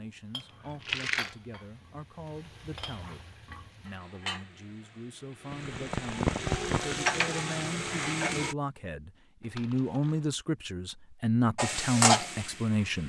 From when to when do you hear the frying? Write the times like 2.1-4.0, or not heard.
0.0-8.6, 11.6-13.0.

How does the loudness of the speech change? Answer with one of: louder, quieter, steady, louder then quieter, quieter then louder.
louder.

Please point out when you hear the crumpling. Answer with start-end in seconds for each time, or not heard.
0.4-1.4, 5.5-7.0, 9.4-10.3.